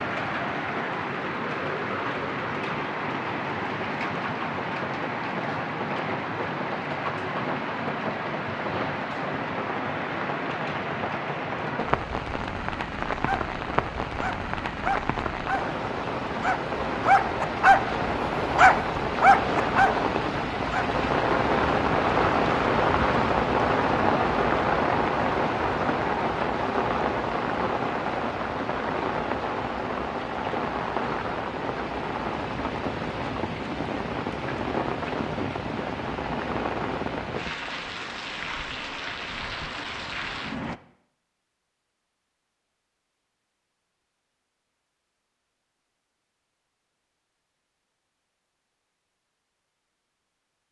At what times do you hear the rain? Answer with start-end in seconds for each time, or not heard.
0.0-40.8.